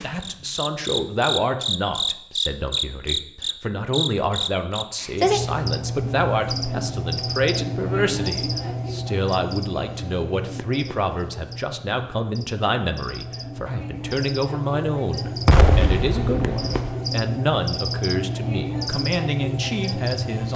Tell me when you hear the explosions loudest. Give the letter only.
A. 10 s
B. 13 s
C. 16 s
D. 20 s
C.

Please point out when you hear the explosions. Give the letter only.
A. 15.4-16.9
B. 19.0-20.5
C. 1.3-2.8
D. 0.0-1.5
A.